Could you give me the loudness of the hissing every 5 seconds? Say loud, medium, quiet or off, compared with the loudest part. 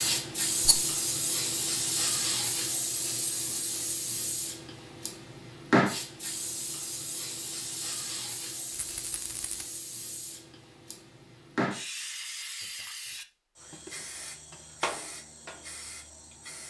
loud, loud, medium, quiet.